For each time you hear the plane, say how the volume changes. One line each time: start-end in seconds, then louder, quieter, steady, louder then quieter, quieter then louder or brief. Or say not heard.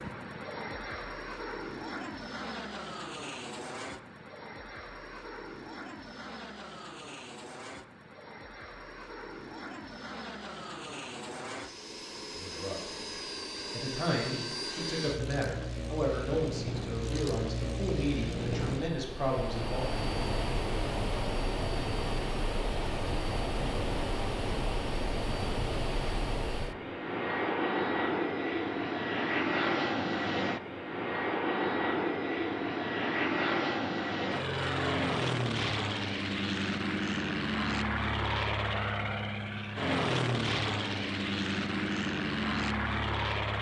0.0-43.5 louder.